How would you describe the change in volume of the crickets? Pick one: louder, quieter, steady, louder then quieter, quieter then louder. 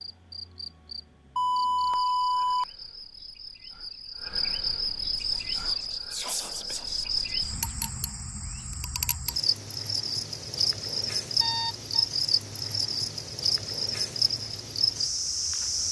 louder.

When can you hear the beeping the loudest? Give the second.
2 s.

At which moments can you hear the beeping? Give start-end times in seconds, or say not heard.
1.4-2.6, 11.3-12.1.